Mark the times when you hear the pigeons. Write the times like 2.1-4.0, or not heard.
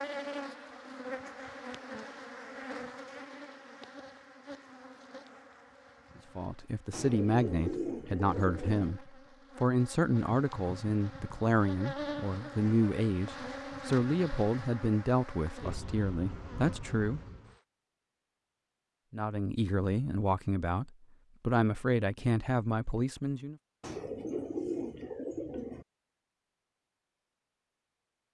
6.9-8.9, 23.8-25.9.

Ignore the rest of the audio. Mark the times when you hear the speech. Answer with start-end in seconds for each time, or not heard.
6.3-17.2, 19.1-23.6.